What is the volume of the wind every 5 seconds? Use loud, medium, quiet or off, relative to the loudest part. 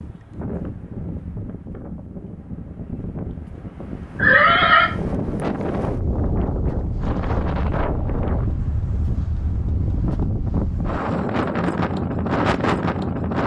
medium, loud, loud.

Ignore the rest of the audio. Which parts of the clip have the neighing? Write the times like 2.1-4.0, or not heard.
4.2-4.9.